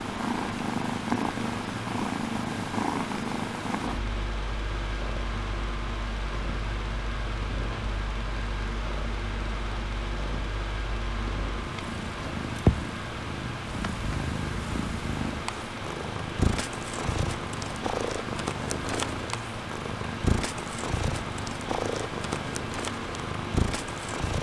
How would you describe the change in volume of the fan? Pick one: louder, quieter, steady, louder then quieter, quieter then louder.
steady.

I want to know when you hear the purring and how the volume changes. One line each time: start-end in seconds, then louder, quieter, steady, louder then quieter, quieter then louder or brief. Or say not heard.
0.0-24.3 quieter then louder.